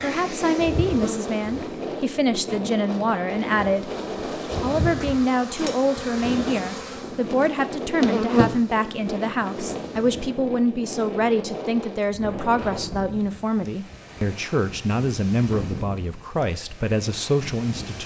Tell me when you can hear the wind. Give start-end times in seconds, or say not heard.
0.0-18.0.